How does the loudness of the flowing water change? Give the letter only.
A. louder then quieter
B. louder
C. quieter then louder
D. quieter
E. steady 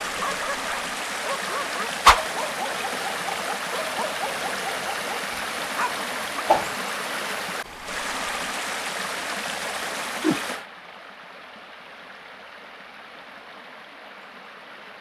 D.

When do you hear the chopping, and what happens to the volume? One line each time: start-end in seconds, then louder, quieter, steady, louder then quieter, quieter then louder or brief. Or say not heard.
not heard.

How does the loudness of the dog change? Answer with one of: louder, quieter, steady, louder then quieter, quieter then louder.
steady.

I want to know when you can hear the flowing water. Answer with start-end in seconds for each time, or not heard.
0.0-14.9.